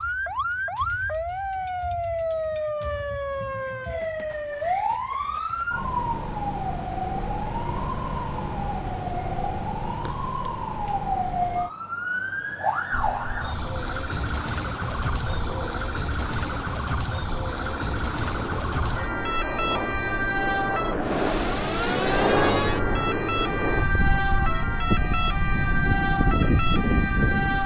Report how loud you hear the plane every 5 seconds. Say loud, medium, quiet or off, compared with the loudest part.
off, off, quiet, medium, loud, loud.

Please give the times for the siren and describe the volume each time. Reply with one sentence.
The siren can be heard from 0.0 to 27.6 s, at a steady volume.